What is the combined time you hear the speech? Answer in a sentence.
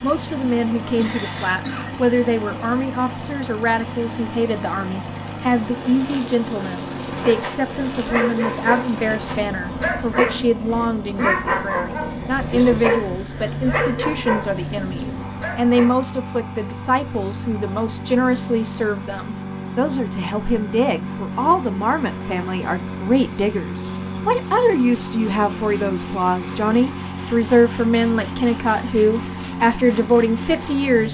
The speech can be heard for 31 seconds in total.